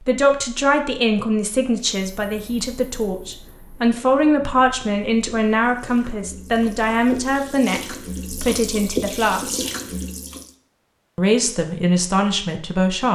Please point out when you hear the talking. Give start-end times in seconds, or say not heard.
0.1-9.6, 11.2-13.1.